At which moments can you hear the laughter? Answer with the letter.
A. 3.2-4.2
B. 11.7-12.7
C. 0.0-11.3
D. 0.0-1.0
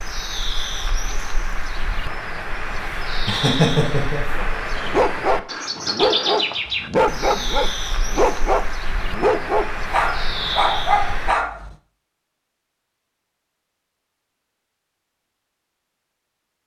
A.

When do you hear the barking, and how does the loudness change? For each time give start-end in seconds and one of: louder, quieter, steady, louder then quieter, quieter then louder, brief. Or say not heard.
4.3-11.8 steady.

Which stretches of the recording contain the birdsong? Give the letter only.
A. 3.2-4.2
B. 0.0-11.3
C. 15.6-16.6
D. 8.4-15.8
B.